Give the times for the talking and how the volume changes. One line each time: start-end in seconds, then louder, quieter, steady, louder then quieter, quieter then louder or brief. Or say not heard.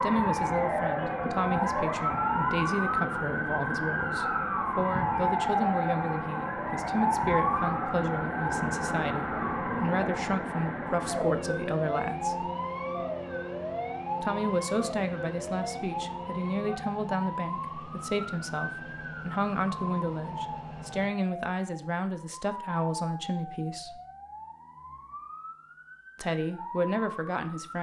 0.0-12.4 steady
14.2-24.0 steady
26.1-27.7 brief.